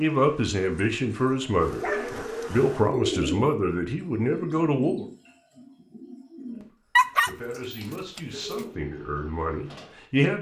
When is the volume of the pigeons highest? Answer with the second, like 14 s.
3 s.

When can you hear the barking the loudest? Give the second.
7 s.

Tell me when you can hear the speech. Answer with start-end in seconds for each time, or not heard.
0.0-1.9, 2.5-5.0, 6.5-10.3.